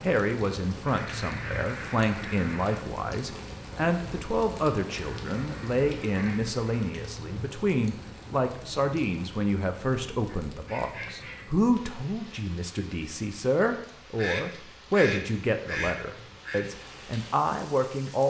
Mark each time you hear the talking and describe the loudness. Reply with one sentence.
You can hear the talking from 0.0 to 18.2 s, at a steady volume.